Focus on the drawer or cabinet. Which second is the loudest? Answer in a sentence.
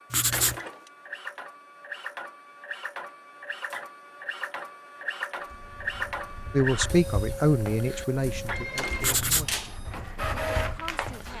The loudest moment of the drawer or cabinet is at 9 seconds.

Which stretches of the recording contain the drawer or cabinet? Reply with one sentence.
The drawer or cabinet can be heard from 0.3 to 0.9 s and from 8.8 to 9.8 s.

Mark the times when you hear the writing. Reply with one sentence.
You can hear the writing from 0.1 to 0.6 s and from 9.0 to 9.5 s.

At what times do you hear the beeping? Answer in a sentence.
You can't hear the beeping here.